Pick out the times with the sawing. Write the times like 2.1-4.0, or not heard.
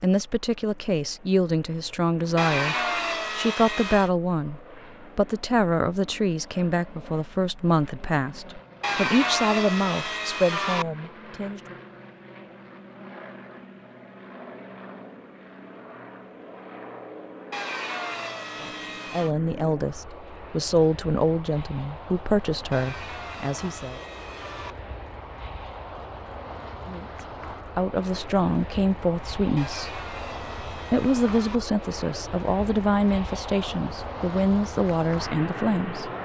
2.4-4.1, 8.8-10.8, 17.5-19.4, 22.7-24.8, 29.6-31.6.